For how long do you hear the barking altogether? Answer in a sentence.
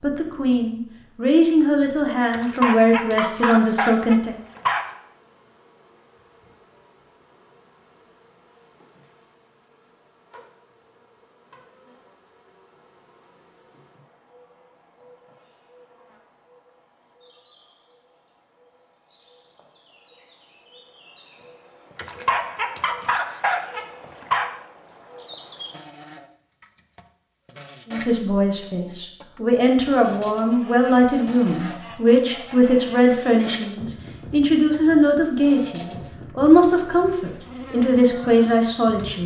The barking can be heard for 5 seconds in total.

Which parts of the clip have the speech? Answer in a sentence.
The speech can be heard from 0.0 to 4.3 s and from 27.9 to 39.2 s.